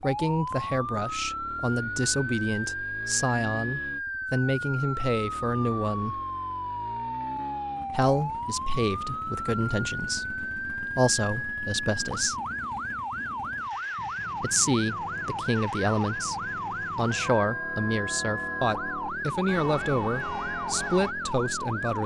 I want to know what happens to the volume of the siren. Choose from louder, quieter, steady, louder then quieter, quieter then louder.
steady.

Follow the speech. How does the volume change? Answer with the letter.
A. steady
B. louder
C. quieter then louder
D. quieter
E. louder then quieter
A.